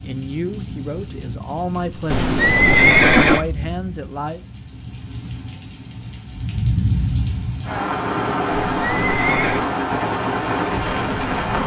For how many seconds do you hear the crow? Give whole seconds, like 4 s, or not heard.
not heard.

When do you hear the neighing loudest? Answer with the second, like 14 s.
3 s.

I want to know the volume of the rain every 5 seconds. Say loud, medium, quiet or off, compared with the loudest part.
quiet, loud, loud.